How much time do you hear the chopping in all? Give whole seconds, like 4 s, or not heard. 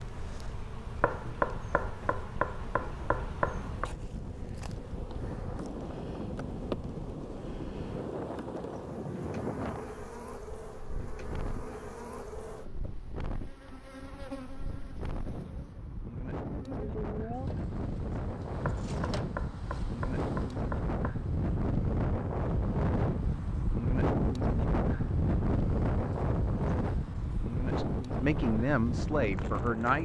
5 s.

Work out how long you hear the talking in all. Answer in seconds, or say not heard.
2 s.